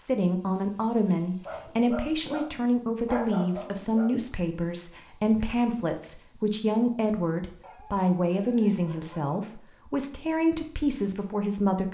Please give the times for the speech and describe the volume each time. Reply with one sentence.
The speech can be heard from 0.0 to 11.8 s, at a steady volume.